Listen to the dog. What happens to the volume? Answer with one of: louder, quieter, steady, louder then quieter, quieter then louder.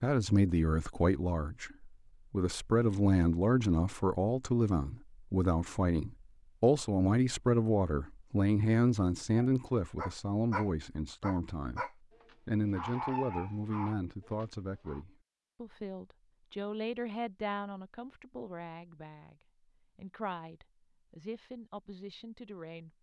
quieter.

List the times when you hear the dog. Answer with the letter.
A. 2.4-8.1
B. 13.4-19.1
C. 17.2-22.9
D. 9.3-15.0
D.